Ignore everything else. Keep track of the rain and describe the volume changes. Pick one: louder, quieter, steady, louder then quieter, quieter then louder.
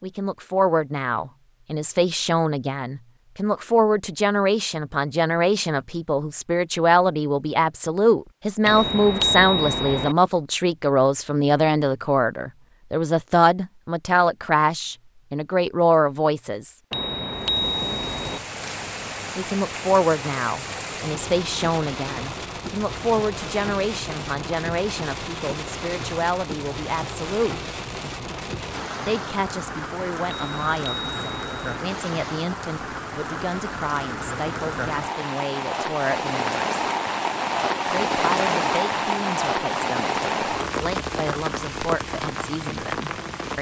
louder.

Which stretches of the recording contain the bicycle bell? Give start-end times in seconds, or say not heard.
8.7-10.2, 16.9-18.4, 30.2-31.8.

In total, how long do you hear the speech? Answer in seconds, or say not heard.
38 s.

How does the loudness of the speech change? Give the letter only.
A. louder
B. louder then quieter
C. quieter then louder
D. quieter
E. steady
D.